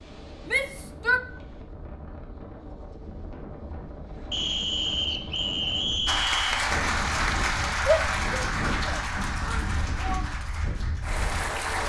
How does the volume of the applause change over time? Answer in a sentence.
The volume of the applause goes down.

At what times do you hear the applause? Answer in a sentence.
The applause can be heard from 6.0 to 11.8 s.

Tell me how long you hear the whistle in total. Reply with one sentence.
The whistle can be heard for 2 seconds in total.